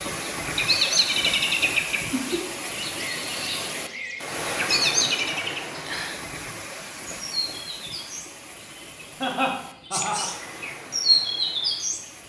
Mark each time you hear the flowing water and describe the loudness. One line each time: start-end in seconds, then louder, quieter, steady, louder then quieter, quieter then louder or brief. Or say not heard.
0.0-12.2 quieter.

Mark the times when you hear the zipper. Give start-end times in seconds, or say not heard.
not heard.